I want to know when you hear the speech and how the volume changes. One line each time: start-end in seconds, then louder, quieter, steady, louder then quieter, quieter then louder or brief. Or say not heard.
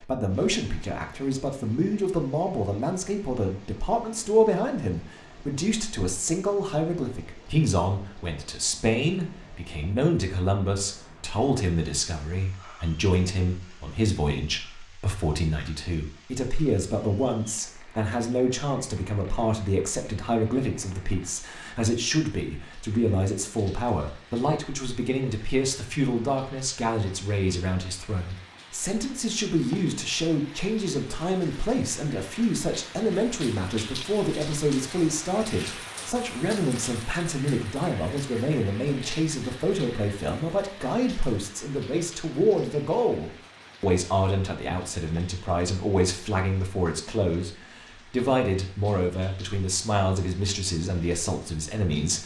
0.0-52.2 steady.